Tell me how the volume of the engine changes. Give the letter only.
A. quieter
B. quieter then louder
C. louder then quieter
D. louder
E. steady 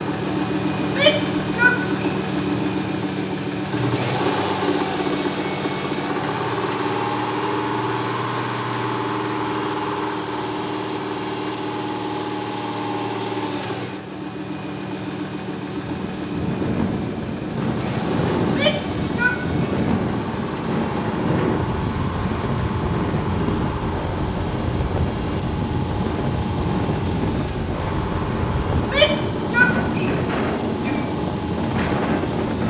A.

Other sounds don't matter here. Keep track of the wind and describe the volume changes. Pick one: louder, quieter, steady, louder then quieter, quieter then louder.
steady.